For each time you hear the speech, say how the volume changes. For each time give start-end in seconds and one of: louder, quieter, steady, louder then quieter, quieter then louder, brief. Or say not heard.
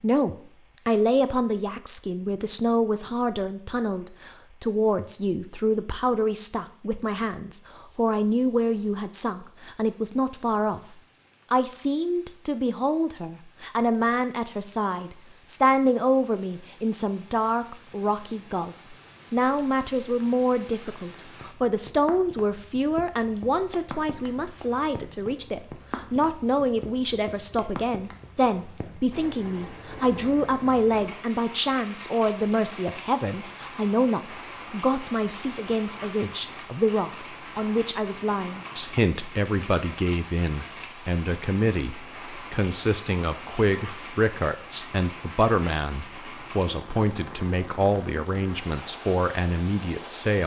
0.0-10.8 steady
11.5-50.4 steady.